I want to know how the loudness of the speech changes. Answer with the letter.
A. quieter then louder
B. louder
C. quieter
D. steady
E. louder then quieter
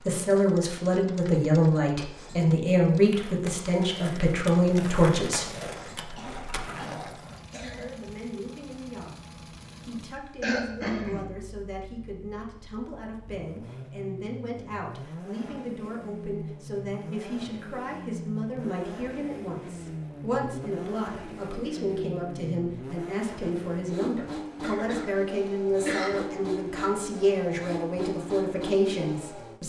A.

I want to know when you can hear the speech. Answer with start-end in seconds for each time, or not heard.
0.1-5.5, 7.8-29.6.